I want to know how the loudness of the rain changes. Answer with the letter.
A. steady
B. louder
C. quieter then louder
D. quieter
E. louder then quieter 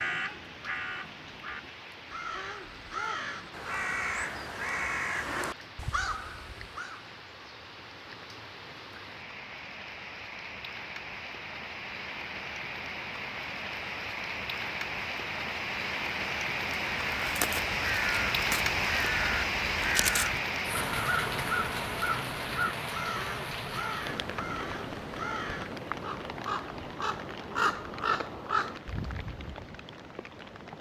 E.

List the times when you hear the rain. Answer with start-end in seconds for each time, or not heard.
0.0-30.7.